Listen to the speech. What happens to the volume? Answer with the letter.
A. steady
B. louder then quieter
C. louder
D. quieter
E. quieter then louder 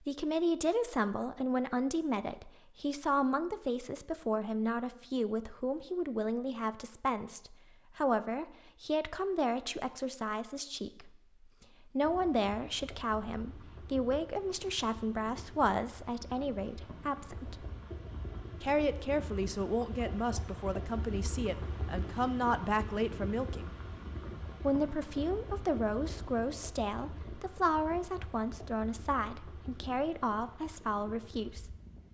A.